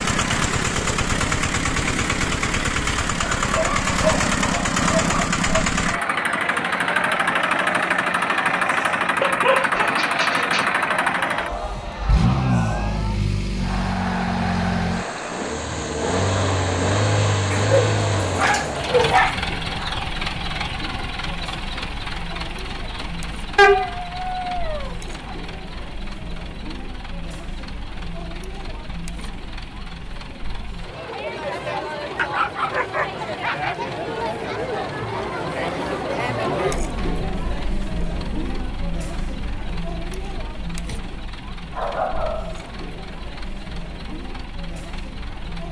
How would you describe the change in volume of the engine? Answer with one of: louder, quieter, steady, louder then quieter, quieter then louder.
quieter.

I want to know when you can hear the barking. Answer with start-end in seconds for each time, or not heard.
3.4-5.7, 9.2-10.7, 17.5-19.4, 23.6-25.4, 32.1-33.8, 41.7-43.1.